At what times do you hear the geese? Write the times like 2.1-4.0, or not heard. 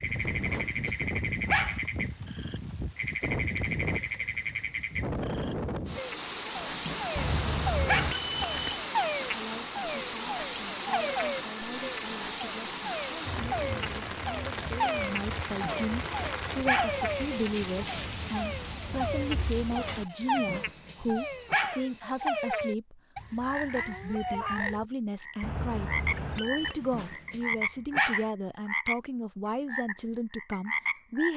not heard.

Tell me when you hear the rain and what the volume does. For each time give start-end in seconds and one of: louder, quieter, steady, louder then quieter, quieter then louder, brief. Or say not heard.
0.0-20.1 steady.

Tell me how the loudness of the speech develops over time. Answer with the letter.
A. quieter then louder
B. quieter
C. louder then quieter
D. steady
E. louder
E.